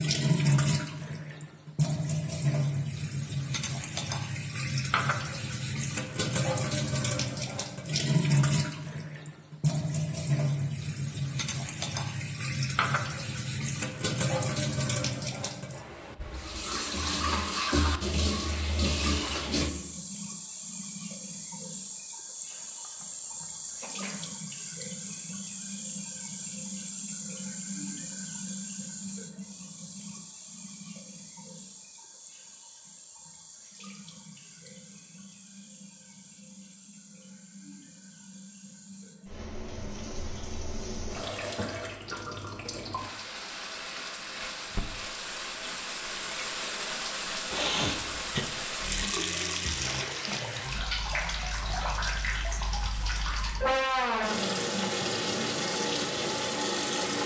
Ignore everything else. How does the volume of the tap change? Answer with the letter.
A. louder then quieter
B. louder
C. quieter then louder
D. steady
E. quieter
C.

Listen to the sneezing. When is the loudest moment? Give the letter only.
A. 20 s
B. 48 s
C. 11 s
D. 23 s
B.